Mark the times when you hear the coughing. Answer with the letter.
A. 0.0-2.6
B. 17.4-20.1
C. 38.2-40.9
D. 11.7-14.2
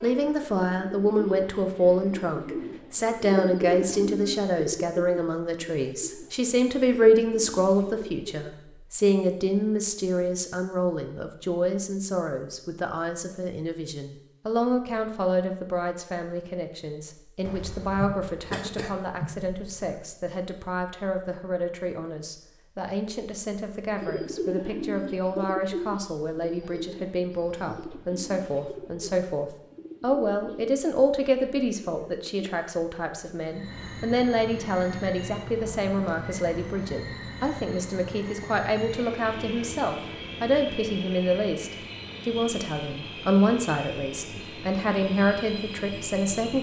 B.